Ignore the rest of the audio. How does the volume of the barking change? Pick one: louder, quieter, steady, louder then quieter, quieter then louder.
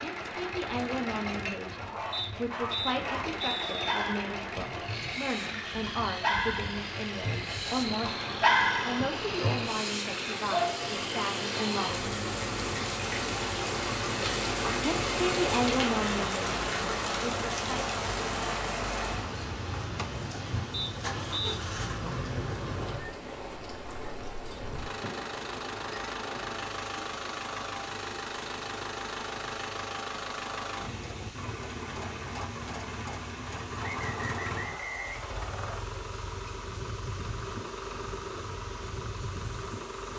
louder then quieter.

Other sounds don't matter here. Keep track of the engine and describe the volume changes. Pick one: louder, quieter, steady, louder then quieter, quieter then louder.
steady.